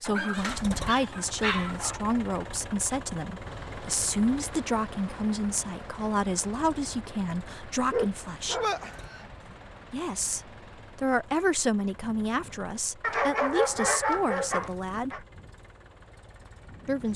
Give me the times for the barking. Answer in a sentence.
The barking can be heard from 0.1 to 2.0 s, from 7.9 to 9.6 s and from 13.0 to 15.2 s.